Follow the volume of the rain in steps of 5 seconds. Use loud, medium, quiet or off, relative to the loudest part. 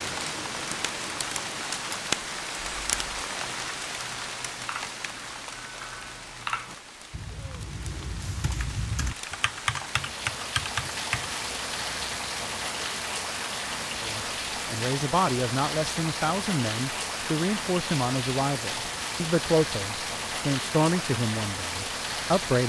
loud, medium, loud, loud, loud.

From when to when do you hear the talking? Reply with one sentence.
You can hear the talking from 14.0 to 22.6 s.